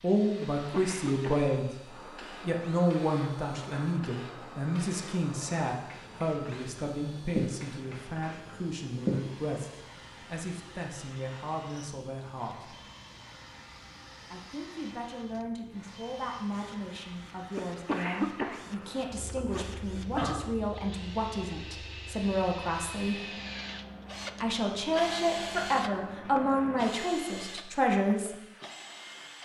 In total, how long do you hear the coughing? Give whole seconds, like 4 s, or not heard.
4 s.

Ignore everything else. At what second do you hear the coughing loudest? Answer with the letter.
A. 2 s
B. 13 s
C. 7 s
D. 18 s
D.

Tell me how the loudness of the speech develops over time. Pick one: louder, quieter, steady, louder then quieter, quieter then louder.
quieter then louder.